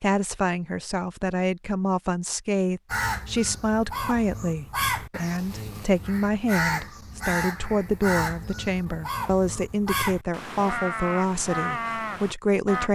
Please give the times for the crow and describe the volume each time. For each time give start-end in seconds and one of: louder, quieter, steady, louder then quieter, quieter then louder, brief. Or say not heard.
2.9-12.8 steady.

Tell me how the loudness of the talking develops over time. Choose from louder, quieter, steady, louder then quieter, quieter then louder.
steady.